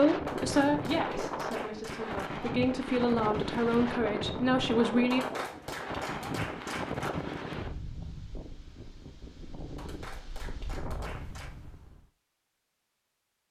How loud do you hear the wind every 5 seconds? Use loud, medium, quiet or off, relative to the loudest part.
loud, loud, medium.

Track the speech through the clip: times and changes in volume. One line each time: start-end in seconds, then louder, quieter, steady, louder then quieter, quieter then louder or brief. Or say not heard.
0.0-5.2 quieter then louder.